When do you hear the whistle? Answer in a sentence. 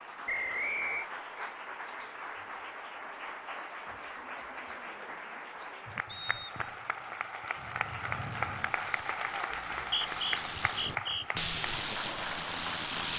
You can hear the whistle from 0.2 to 1.1 s, from 6.0 to 6.7 s and from 9.5 to 11.2 s.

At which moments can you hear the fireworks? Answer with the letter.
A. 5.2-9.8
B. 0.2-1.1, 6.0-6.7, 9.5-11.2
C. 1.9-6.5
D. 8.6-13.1
D.